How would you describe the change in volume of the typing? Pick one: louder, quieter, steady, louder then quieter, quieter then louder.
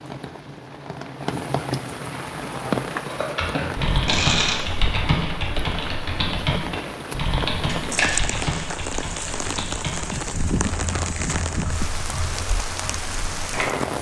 quieter.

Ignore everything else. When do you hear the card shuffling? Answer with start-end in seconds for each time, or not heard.
3.5-4.6, 7.7-8.4.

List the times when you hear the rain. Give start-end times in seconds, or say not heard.
0.0-13.9.